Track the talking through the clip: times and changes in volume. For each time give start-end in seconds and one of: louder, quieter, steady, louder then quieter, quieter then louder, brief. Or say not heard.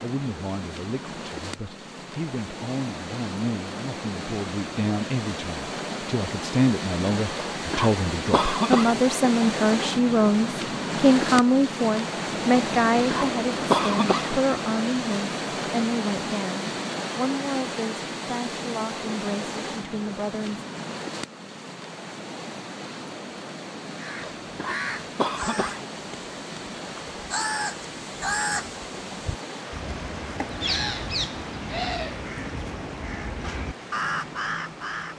0.0-20.6 louder then quieter.